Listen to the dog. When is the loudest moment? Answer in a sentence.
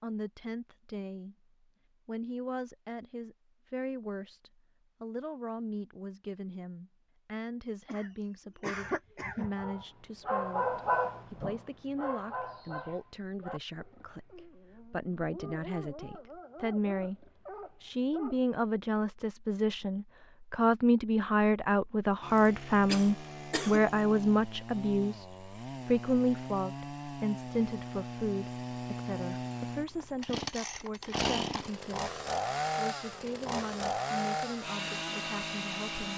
The volume of the dog peaks at 11 seconds.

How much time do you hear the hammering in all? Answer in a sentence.
You can't hear the hammering here.